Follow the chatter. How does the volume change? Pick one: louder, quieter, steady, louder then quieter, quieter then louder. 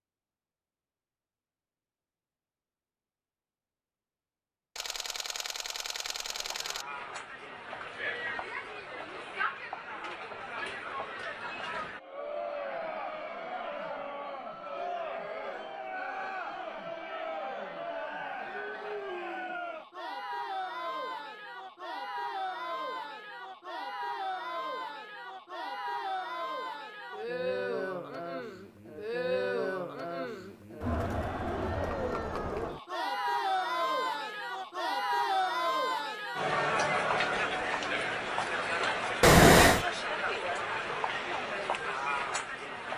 louder.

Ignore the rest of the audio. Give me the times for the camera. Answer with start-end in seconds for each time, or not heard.
4.8-6.8, 39.2-39.9.